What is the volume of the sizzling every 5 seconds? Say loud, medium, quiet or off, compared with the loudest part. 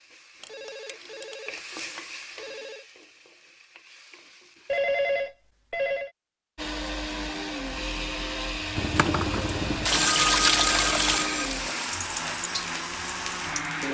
medium, off, loud.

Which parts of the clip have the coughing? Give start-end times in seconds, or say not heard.
not heard.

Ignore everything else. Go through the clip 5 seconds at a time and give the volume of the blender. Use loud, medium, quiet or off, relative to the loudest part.
off, loud, loud.